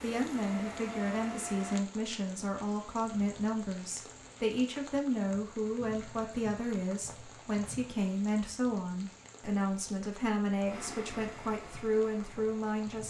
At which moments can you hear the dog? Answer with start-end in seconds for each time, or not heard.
not heard.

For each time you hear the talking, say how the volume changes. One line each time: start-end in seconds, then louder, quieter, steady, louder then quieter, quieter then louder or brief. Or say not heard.
0.0-13.0 steady.